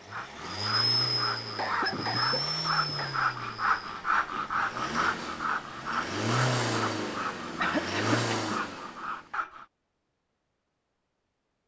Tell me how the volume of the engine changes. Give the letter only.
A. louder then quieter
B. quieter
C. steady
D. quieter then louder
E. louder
D.